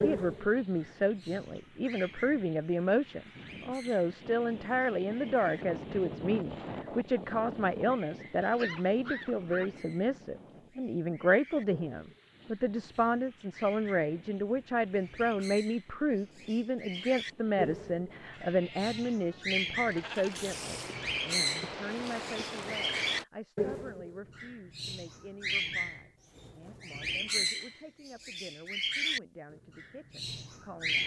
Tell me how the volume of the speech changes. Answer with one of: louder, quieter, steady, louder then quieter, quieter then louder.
quieter.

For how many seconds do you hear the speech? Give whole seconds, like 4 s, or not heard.
31 s.